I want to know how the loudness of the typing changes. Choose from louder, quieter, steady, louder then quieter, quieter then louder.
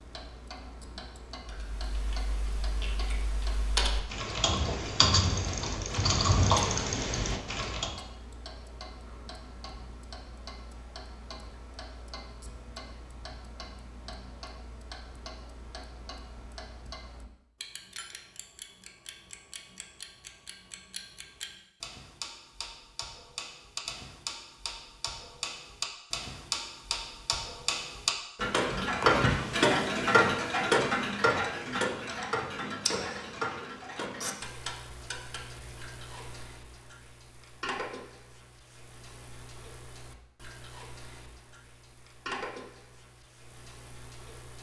louder.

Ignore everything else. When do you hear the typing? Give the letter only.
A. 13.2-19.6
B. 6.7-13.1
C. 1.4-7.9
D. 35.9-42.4
C.